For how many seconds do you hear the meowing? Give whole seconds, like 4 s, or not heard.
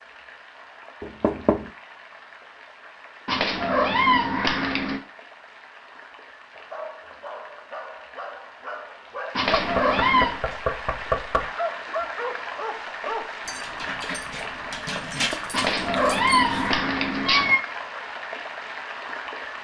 5 s.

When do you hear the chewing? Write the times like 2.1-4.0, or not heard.
not heard.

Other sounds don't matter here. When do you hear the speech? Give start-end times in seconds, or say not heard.
not heard.